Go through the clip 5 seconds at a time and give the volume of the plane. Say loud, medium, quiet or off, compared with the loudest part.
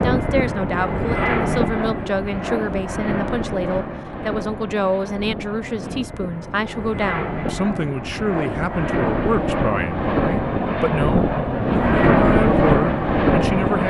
medium, medium, loud.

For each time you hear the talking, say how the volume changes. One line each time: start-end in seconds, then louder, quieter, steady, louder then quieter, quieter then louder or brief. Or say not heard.
0.0-13.8 steady.